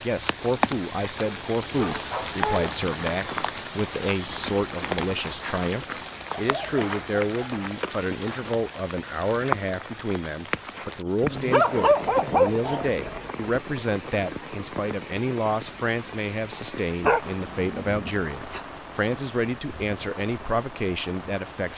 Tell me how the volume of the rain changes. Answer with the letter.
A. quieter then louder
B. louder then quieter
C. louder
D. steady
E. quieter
E.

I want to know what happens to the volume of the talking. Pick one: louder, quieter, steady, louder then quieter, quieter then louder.
steady.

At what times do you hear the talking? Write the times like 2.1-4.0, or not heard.
0.0-21.7.